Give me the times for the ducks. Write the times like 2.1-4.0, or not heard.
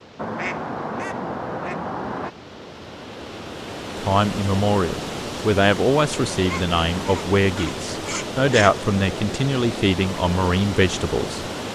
0.1-2.3, 6.4-8.8.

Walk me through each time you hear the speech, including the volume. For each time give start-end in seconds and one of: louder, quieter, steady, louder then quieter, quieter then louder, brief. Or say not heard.
4.0-11.4 steady.